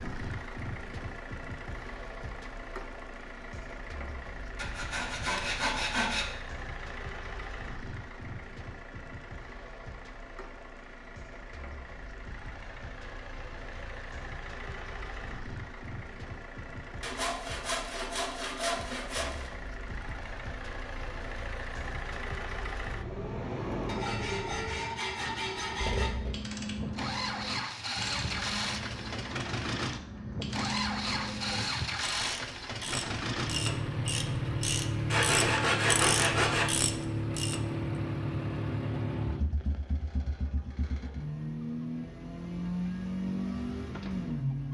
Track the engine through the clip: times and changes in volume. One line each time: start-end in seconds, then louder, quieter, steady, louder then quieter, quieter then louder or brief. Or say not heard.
0.0-44.6 louder.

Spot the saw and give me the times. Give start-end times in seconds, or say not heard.
4.5-6.2, 17.0-19.5, 23.9-26.1, 35.1-36.6.